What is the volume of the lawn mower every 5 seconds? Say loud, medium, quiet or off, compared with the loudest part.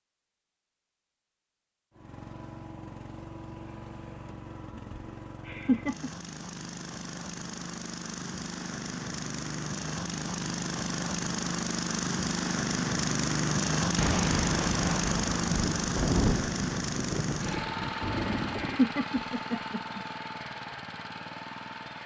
quiet, medium, loud, loud, medium.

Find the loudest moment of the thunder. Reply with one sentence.
The loudest moment of the thunder is at 16 seconds.